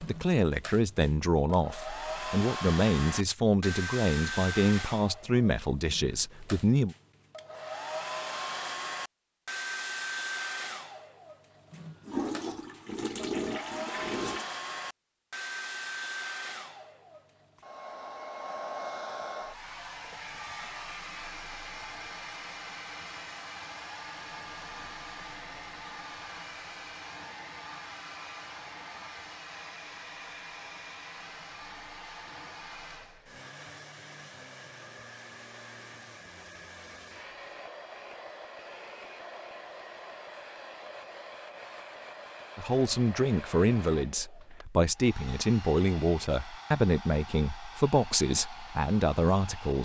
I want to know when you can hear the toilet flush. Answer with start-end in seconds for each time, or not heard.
12.1-14.5.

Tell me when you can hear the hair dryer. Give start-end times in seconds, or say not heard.
0.0-49.8.